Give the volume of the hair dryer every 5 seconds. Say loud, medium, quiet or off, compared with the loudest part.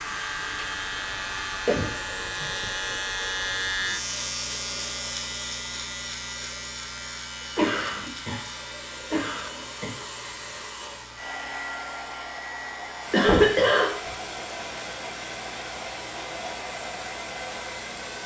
loud, medium, loud, loud.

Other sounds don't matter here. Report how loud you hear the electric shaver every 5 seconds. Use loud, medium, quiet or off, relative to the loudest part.
loud, medium, quiet, quiet.